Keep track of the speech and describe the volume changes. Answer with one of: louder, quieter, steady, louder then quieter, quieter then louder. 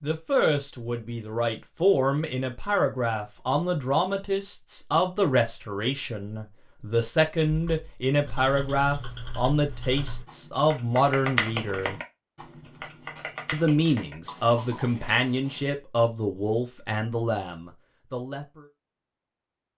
steady.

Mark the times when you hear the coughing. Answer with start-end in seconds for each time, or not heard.
not heard.